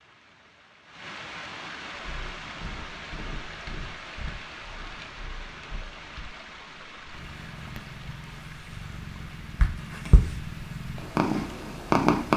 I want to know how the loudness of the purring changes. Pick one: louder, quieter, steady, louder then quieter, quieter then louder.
louder.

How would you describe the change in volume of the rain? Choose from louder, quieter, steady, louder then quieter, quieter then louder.
quieter.